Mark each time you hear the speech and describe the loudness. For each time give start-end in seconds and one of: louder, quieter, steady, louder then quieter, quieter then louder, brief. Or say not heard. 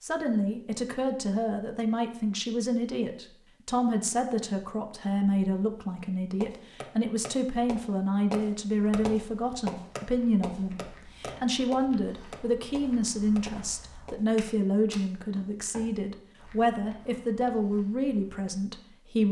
0.0-19.2 steady.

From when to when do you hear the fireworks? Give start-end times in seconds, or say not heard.
6.4-14.5.